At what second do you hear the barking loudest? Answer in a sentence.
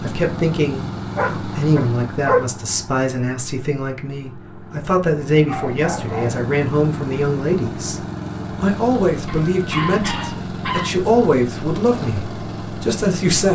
The volume of the barking peaks at 2 seconds.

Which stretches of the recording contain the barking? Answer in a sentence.
You can hear the barking from 1.1 to 2.5 s, from 5.5 to 6.4 s and from 9.2 to 10.9 s.